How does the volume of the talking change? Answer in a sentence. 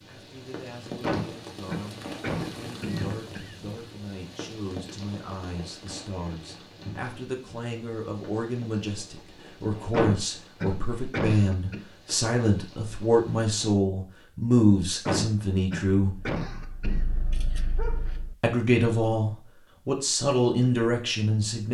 The volume of the talking goes up.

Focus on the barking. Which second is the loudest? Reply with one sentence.
The loudest moment of the barking is at 18 seconds.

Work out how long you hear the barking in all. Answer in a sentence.
The barking can be heard for 2 seconds in total.